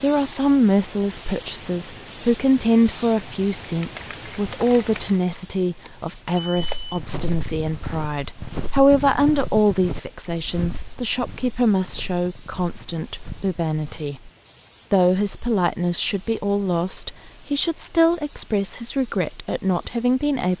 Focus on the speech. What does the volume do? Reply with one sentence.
The loudness of the speech stays about the same.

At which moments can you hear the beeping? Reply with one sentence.
You can hear the beeping from 5.8 to 7.0 s.